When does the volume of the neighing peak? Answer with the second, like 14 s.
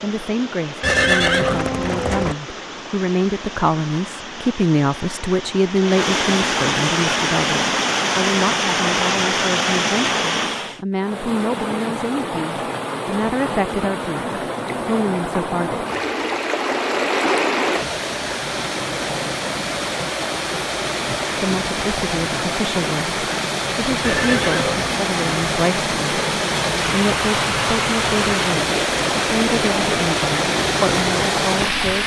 1 s.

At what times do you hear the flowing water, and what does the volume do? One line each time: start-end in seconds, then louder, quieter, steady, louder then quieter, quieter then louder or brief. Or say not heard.
0.0-32.0 louder.